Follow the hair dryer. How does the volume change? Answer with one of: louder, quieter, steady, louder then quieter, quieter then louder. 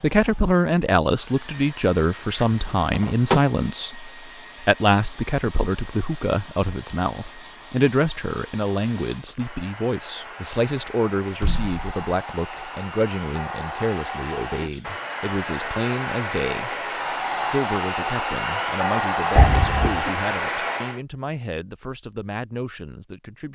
louder.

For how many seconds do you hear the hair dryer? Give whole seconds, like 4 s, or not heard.
21 s.